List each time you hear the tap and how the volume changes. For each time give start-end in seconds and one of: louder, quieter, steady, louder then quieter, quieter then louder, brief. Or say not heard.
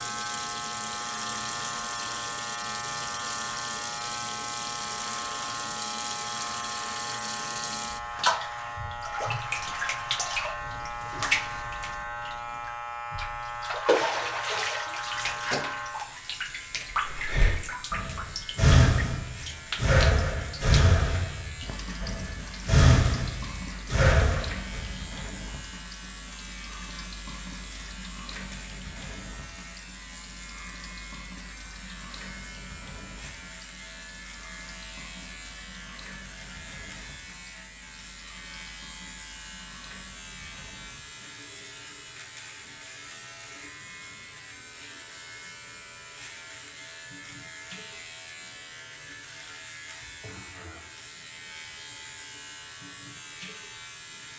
0.0-54.3 quieter.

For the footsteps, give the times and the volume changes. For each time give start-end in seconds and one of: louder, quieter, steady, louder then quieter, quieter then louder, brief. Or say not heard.
not heard.